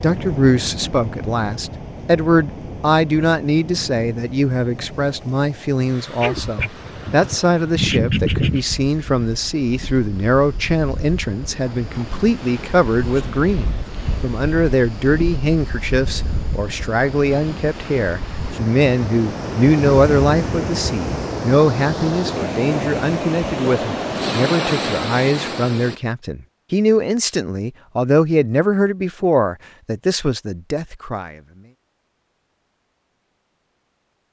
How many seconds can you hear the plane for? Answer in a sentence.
You can't hear the plane here.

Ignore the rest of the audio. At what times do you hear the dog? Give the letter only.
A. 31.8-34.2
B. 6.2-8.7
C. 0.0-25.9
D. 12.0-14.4
B.